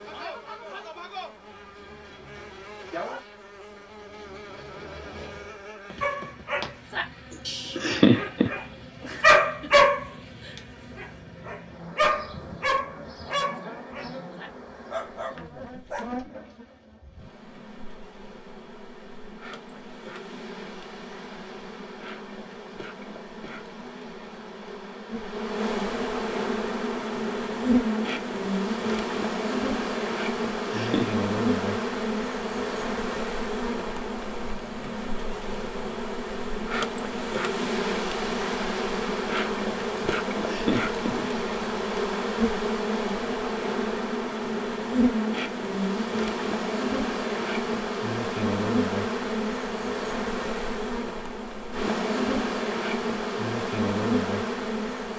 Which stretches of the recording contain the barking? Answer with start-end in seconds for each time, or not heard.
6.0-16.2.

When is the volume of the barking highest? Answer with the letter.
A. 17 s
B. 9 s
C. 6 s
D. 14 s
B.